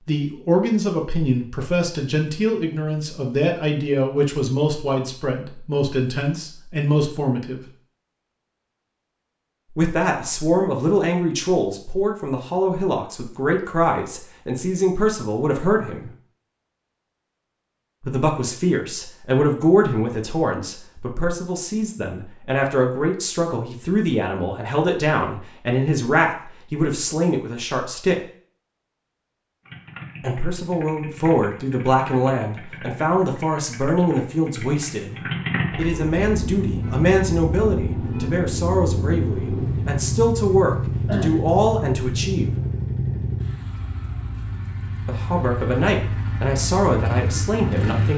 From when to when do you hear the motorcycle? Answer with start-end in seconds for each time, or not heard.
29.6-48.1.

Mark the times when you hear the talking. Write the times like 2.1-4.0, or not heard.
0.1-7.7, 9.7-16.1, 18.0-28.2, 30.2-42.5, 45.0-48.1.